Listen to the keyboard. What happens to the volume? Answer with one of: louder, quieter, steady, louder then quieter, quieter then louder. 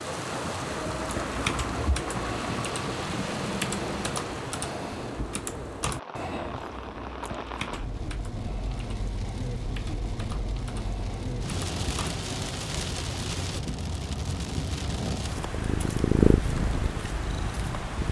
quieter.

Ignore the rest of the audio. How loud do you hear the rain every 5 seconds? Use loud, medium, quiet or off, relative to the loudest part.
loud, medium, loud, loud.